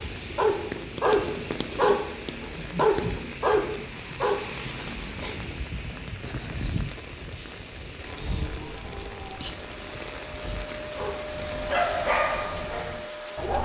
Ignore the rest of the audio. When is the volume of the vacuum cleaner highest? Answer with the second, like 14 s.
12 s.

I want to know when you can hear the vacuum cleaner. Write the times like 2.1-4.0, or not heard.
8.0-13.6.